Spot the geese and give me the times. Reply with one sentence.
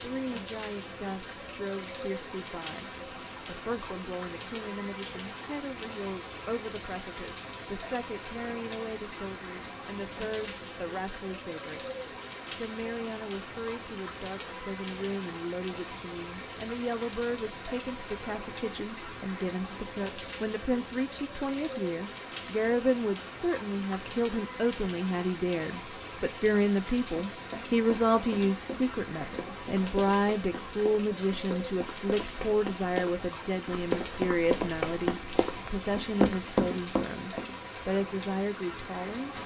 The geese can't be heard in this clip.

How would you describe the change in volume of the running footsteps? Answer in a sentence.
The loudness of the running footsteps goes up.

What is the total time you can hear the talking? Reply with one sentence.
You can hear the talking for 39 seconds altogether.